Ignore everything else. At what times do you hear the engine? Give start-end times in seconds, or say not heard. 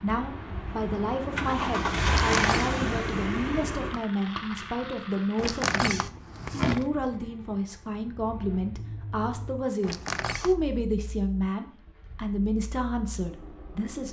0.0-14.0.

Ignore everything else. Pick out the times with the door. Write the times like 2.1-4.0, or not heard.
2.0-2.7, 5.3-6.8, 9.8-10.7.